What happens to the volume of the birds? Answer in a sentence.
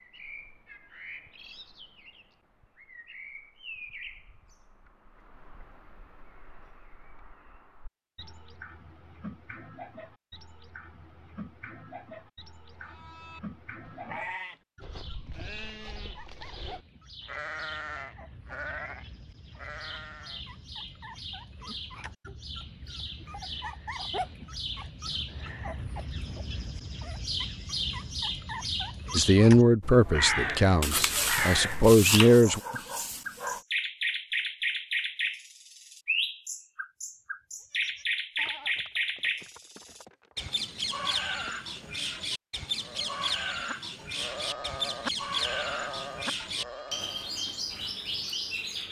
The loudness of the birds goes up.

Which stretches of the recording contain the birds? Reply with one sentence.
You can hear the birds from 0.0 to 48.8 s.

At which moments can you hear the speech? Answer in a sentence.
The speech can be heard from 29.1 to 32.6 s.